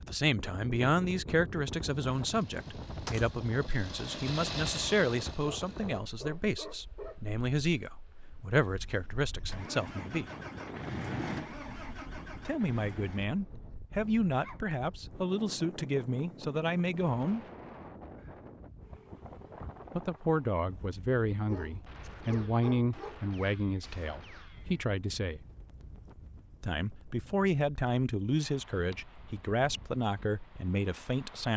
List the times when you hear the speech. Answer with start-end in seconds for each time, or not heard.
0.0-10.2, 12.4-17.4, 19.9-25.4, 26.6-31.5.